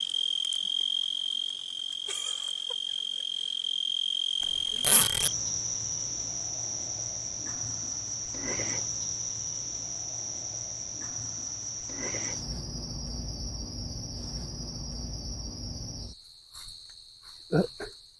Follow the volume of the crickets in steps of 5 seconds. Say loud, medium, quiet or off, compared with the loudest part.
loud, loud, medium, medium.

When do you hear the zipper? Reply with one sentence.
You can hear the zipper from 4.4 to 5.3 s.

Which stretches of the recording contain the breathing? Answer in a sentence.
You can't hear the breathing here.